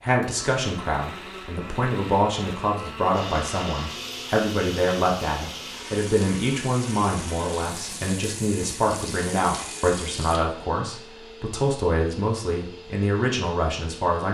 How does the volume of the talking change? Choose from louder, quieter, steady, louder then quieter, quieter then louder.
steady.